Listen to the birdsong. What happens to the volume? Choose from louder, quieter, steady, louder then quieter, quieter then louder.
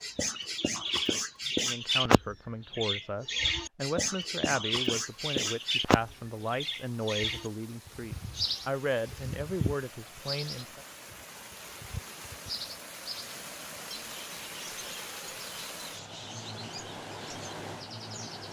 quieter.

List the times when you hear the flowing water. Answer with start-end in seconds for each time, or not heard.
4.9-18.4.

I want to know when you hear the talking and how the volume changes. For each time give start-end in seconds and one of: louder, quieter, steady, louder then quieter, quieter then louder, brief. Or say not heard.
1.6-10.8 steady.